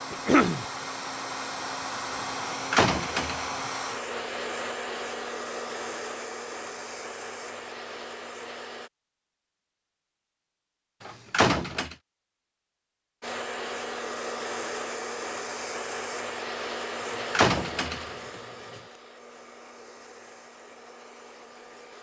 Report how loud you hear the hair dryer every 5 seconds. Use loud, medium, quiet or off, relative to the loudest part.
loud, loud, loud, loud, quiet.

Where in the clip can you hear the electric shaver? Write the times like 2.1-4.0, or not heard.
not heard.